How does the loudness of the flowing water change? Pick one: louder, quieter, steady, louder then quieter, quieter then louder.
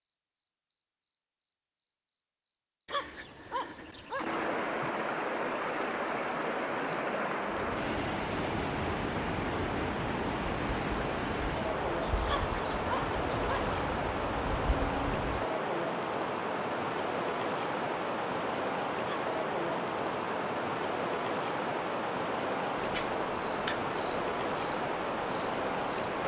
steady.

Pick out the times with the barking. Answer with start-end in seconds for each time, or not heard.
2.9-4.5, 12.2-13.8, 19.0-20.5.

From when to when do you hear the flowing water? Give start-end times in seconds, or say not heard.
4.2-26.2.